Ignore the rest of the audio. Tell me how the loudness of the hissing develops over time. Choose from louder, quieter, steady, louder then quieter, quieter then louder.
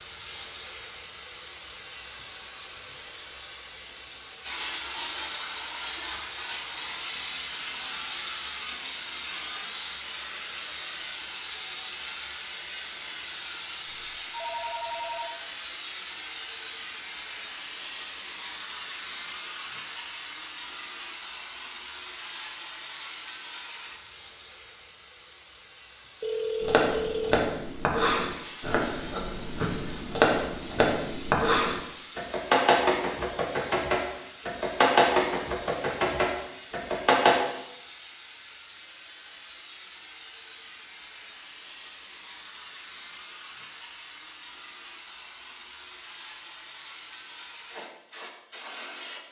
quieter.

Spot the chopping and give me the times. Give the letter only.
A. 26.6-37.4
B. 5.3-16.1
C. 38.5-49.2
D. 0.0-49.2
A.